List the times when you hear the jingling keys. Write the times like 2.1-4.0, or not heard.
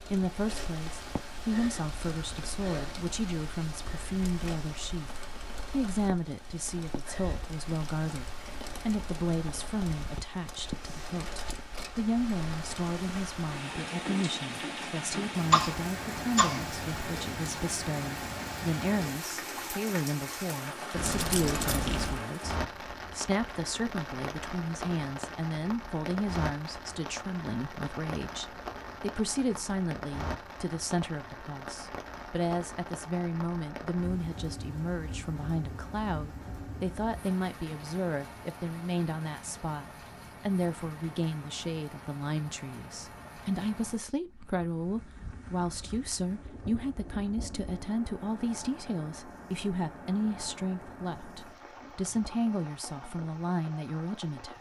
20.9-22.2.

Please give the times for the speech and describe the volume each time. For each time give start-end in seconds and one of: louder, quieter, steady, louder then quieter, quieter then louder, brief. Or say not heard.
0.1-54.5 steady.